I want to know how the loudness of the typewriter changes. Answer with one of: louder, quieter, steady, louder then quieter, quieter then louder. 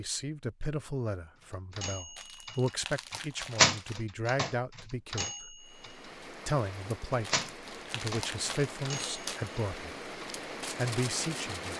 louder then quieter.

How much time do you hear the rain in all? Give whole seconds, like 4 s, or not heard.
6 s.